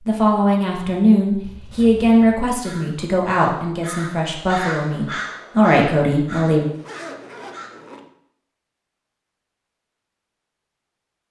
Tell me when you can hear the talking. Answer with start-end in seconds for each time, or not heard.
0.1-6.7.